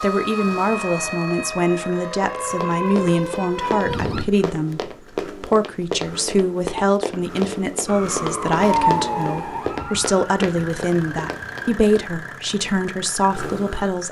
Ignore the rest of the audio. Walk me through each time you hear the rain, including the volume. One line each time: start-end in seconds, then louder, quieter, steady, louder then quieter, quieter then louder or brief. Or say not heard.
not heard.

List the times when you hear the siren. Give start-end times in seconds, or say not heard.
0.0-4.2, 7.8-11.7.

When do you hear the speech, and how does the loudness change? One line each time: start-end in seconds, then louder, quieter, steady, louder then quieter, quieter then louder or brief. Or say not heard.
0.0-14.0 steady.